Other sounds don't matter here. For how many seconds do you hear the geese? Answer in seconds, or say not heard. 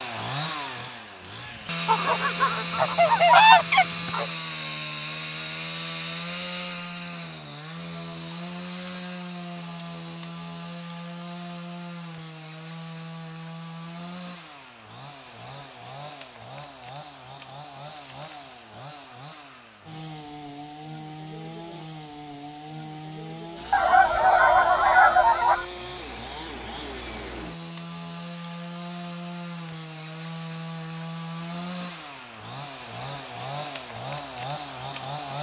4 s.